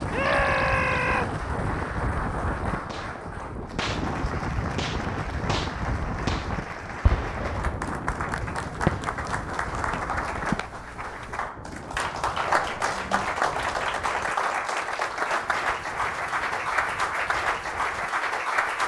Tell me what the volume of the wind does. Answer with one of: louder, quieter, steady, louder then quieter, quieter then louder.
quieter.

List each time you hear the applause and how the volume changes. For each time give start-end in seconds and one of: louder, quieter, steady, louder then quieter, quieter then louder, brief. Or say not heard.
0.0-18.8 louder.